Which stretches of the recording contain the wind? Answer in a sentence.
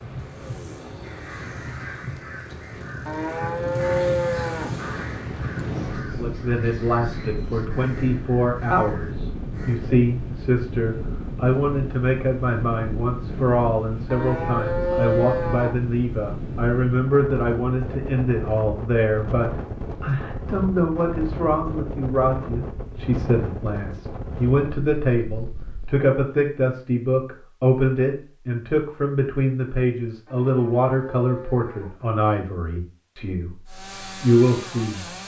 You can hear the wind from 0.0 to 26.0 s.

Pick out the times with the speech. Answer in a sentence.
The speech can be heard from 6.0 to 35.0 s.